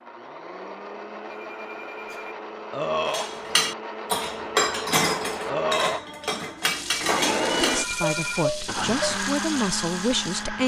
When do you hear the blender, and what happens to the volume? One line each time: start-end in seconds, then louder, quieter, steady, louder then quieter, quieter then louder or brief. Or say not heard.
0.0-10.6 louder.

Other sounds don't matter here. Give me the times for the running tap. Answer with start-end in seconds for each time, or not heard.
6.5-10.6.